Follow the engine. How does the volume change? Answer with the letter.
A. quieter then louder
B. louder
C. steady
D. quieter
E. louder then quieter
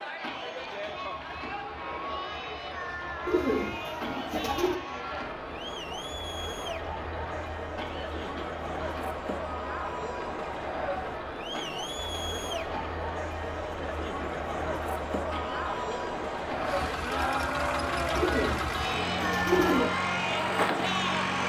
B.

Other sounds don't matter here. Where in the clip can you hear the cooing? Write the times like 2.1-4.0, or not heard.
3.2-4.8, 18.1-19.9.